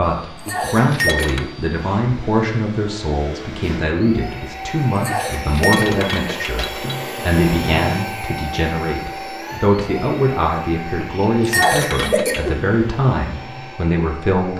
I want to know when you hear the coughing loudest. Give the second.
12 s.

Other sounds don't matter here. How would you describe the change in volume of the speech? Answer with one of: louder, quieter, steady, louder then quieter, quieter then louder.
steady.